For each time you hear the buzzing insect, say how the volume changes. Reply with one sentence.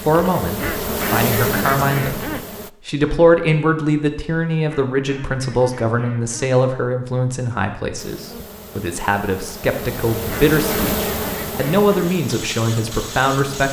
The buzzing insect can be heard briefly from 0.0 to 2.7 s; and from 8.0 to 13.6 s, getting louder then quieter.